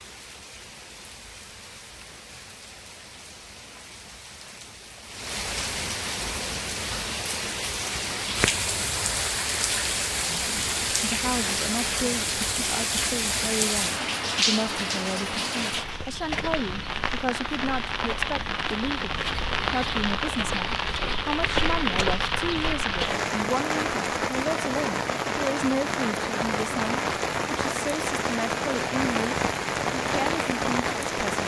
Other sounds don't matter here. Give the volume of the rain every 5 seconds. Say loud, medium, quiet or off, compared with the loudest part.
quiet, loud, loud, loud, loud, loud, loud.